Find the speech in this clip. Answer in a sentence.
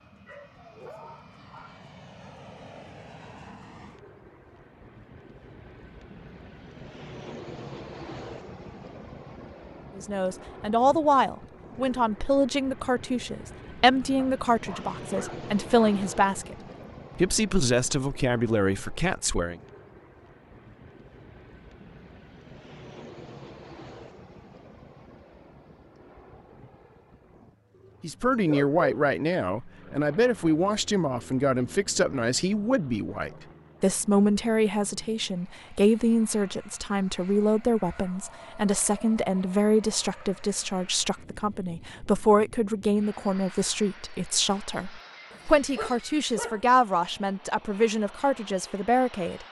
You can hear the speech from 9.9 to 16.6 s, from 17.1 to 19.6 s and from 28.0 to 49.4 s.